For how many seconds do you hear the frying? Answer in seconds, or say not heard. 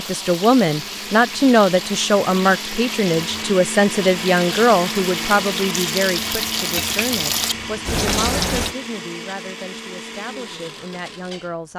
9 s.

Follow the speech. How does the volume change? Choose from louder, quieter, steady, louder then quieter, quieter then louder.
quieter.